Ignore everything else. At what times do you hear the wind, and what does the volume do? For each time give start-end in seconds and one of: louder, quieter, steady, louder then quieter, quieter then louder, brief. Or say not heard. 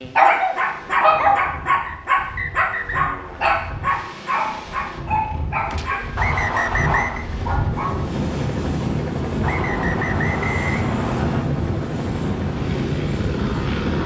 0.0-14.0 louder.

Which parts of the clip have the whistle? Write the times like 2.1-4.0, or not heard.
1.9-3.1, 6.2-7.2, 9.4-11.4.